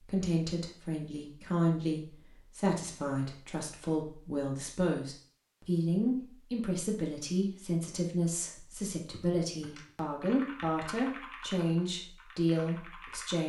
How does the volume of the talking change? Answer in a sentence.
The loudness of the talking stays about the same.